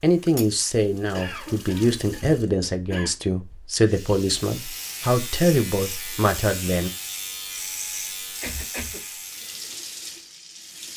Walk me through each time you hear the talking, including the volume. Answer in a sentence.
You can hear the talking from 0.0 to 6.9 s, at a steady volume.